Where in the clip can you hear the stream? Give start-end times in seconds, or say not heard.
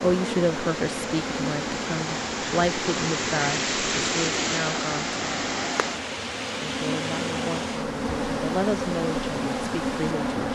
0.0-10.5.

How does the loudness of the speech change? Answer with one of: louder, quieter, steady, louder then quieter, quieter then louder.
quieter.